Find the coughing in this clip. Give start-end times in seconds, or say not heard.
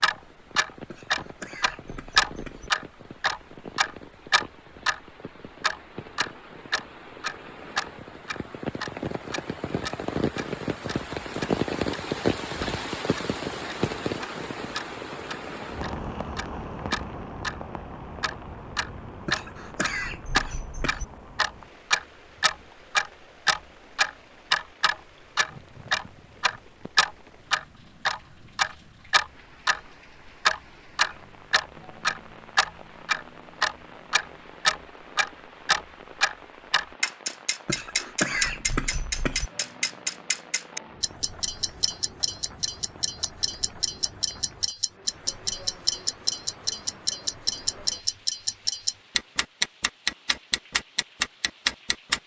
0.9-2.7, 19.2-21.1, 37.6-39.5.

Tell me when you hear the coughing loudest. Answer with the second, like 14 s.
38 s.